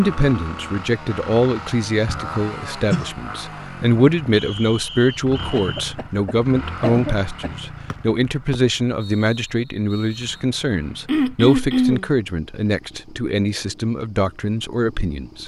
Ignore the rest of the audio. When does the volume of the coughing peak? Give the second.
12 s.